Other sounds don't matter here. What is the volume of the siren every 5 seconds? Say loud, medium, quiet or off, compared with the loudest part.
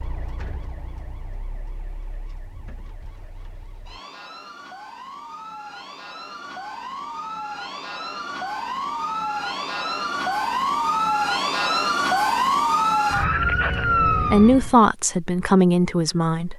quiet, medium, loud, off.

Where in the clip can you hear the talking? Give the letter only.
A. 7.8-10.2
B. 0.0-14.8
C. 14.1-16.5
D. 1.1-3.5
C.